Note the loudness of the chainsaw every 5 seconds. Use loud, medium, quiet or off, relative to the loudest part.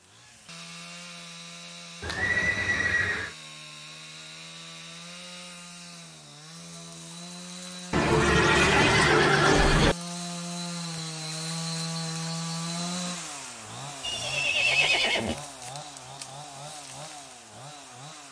medium, medium, loud, medium.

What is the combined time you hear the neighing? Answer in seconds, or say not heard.
5 s.